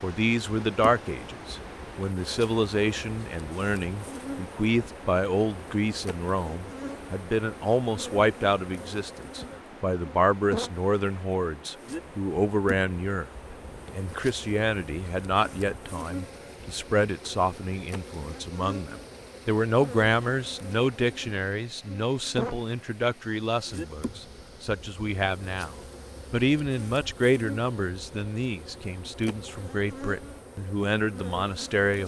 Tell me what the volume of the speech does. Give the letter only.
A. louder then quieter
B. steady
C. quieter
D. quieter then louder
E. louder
B.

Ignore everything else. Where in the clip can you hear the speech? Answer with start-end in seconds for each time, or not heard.
0.0-32.0.